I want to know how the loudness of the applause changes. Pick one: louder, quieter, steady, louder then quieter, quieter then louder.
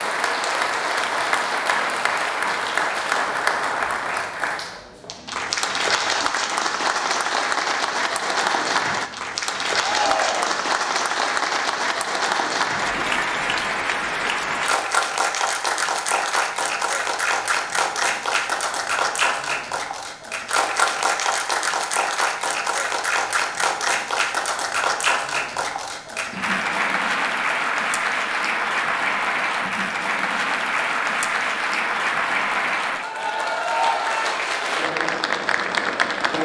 steady.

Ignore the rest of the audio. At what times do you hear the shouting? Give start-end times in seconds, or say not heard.
9.8-10.7.